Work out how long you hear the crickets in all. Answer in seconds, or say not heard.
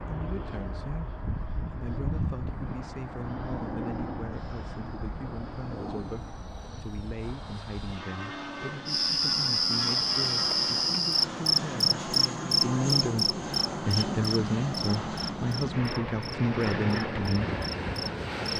10 s.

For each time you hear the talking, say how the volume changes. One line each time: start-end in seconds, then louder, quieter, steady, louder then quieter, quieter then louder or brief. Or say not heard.
0.0-17.6 louder.